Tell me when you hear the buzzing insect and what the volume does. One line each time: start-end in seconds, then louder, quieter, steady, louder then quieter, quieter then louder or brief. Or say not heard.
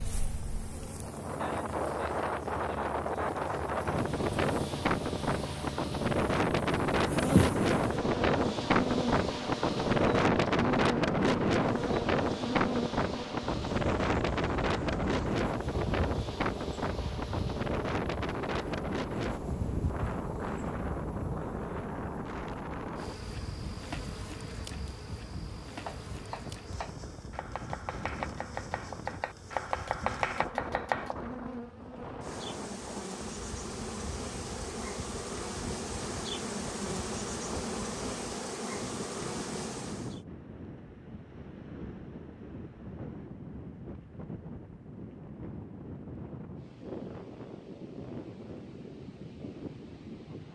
0.0-40.2 quieter then louder.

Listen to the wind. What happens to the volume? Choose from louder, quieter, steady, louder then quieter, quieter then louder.
quieter.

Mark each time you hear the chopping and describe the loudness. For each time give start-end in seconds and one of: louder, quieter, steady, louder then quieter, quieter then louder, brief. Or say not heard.
25.6-31.1 louder.